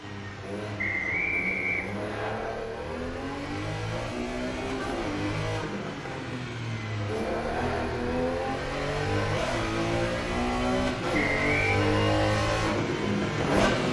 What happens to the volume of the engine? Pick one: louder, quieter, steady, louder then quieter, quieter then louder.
louder.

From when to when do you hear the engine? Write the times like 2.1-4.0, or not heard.
0.0-13.8.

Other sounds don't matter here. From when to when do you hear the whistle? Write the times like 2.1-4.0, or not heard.
0.8-2.3, 11.1-11.8.